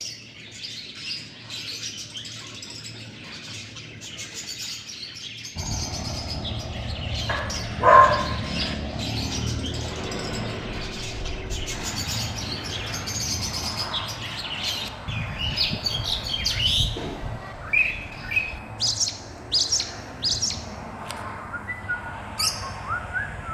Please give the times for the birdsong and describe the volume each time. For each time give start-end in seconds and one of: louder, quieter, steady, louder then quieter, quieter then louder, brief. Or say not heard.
0.0-23.4 louder.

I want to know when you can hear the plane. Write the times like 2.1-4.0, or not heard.
5.5-23.5.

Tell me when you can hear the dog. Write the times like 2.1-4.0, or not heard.
7.2-8.8.